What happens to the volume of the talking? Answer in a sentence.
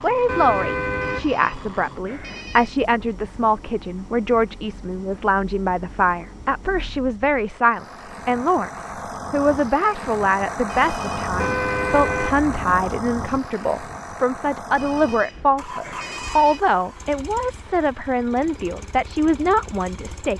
The volume of the talking stays about the same.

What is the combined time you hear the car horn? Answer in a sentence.
You can hear the car horn for 3 seconds altogether.